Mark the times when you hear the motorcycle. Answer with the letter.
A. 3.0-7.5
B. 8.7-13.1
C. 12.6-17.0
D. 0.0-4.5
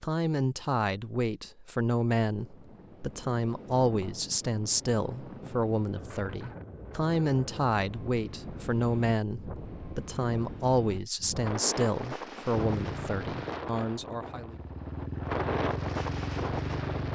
C.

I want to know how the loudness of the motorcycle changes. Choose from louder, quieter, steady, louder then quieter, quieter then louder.
quieter then louder.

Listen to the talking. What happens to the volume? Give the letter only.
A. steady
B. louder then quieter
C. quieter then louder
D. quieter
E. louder
A.